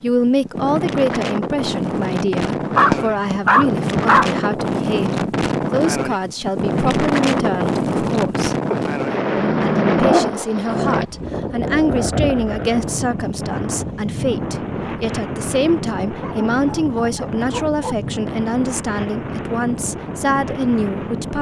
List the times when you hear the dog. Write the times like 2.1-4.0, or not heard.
2.8-4.3, 8.7-11.1, 16.1-17.9.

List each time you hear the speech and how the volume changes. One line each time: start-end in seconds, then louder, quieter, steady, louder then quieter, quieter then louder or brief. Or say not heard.
0.0-8.6 steady
9.3-21.3 steady.